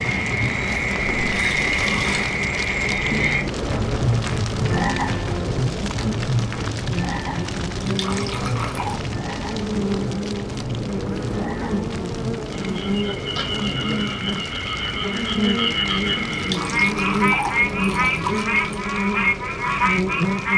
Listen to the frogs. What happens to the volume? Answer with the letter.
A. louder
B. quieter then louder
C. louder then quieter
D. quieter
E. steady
B.